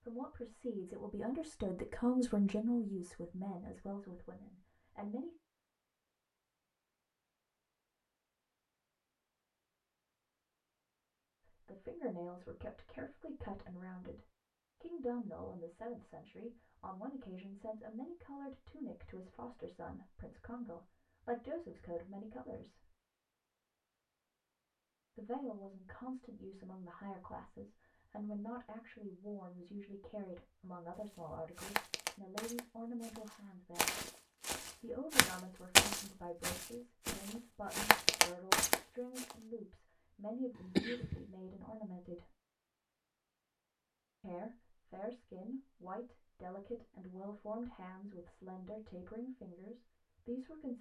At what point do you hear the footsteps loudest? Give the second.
36 s.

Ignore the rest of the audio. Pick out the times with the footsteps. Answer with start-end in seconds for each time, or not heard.
31.6-39.4.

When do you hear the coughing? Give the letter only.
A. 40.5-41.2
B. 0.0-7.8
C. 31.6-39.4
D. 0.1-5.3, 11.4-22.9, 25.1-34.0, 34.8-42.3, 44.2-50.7
A.